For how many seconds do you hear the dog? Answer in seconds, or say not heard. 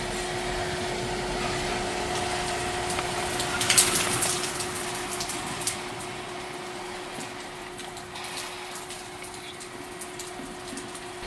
not heard.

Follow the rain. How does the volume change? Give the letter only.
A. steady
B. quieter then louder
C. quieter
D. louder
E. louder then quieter
C.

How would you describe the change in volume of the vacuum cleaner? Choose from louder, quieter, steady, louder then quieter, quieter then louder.
quieter.